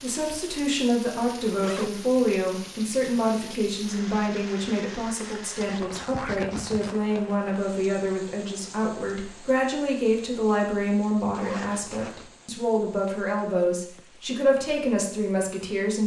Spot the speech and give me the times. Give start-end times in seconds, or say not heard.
0.0-16.0.